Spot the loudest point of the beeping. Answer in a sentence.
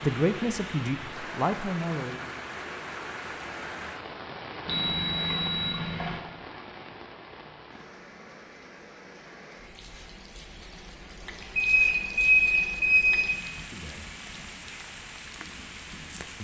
The volume of the beeping peaks at 12 seconds.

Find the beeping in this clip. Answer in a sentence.
The beeping can be heard from 4.7 to 6.2 s and from 11.6 to 13.2 s.